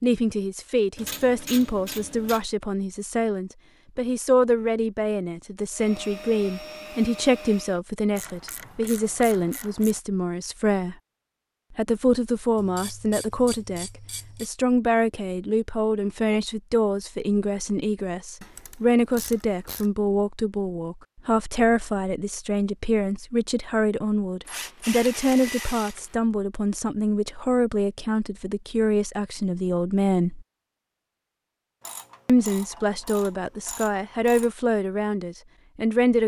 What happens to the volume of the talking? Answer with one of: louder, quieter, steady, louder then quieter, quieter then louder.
steady.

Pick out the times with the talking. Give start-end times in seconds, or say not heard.
0.0-10.9, 11.7-30.4, 32.2-36.2.